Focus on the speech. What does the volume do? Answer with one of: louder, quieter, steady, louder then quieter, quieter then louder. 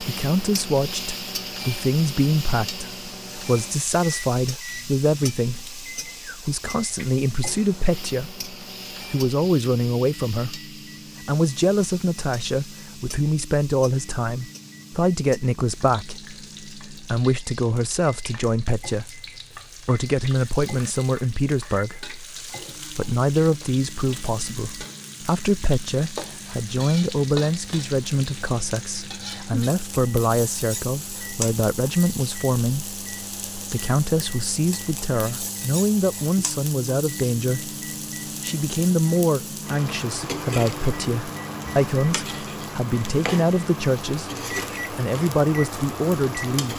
steady.